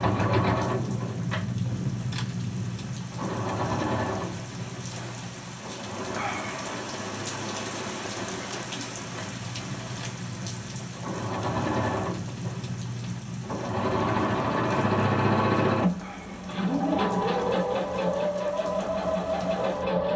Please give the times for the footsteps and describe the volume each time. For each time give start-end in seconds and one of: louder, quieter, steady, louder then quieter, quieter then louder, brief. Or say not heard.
not heard.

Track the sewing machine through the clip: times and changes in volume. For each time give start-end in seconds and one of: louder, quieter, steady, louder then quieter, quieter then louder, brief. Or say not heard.
0.0-20.1 quieter then louder.